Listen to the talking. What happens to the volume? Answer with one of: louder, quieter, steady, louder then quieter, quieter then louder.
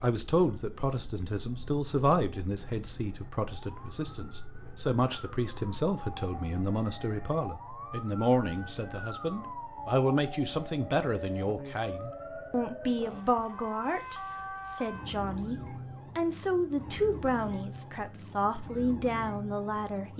steady.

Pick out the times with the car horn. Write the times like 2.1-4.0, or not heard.
not heard.